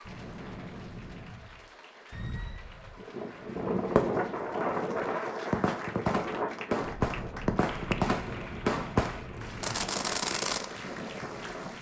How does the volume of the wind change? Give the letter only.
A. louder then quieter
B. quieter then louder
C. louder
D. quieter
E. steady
A.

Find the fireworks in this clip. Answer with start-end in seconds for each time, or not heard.
3.2-10.7.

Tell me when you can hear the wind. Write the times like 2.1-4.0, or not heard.
0.0-11.7.